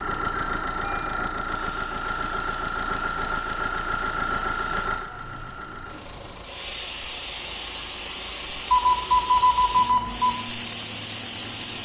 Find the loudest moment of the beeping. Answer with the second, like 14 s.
9 s.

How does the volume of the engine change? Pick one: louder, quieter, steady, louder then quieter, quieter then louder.
quieter.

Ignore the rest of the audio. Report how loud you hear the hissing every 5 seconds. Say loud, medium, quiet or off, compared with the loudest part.
medium, loud, loud.